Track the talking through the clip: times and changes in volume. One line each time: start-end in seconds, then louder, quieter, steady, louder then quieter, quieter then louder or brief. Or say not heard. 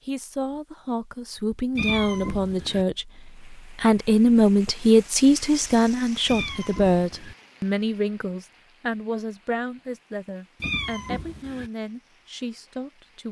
0.1-13.2 louder then quieter.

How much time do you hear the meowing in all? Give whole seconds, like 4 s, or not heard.
3 s.